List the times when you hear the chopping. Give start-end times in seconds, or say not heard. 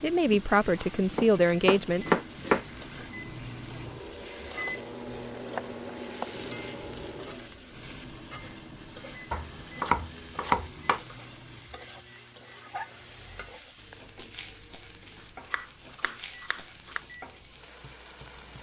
0.2-2.6, 5.5-6.3, 9.3-11.0, 15.4-17.0.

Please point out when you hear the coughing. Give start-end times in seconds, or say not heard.
not heard.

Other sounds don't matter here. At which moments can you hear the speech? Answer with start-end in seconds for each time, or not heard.
0.0-2.1.